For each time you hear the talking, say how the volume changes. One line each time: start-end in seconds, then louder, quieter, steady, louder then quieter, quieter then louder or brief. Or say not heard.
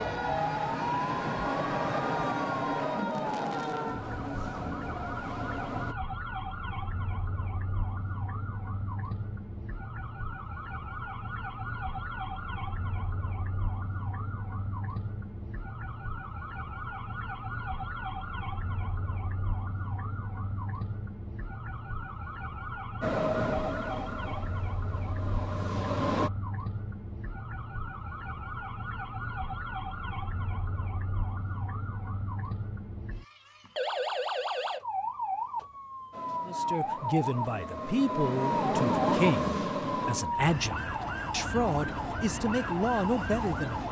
36.5-43.8 steady.